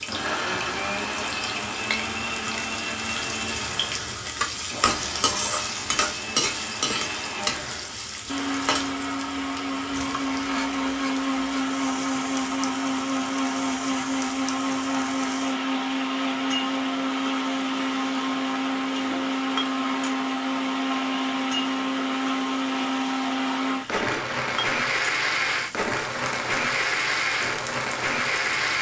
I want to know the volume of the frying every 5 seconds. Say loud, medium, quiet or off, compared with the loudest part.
loud, loud, medium, medium, medium, medium.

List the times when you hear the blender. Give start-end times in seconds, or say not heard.
0.0-28.7.